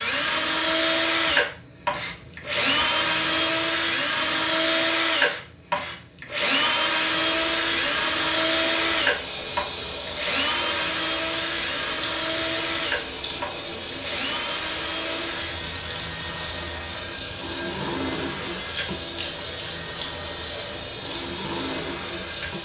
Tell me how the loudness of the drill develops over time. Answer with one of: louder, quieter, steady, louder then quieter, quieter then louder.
quieter.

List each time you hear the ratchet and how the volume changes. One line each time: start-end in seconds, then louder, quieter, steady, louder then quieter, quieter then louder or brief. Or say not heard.
not heard.